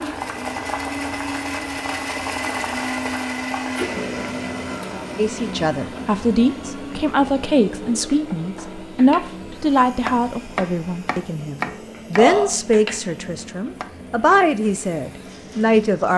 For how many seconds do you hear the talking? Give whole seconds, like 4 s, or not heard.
11 s.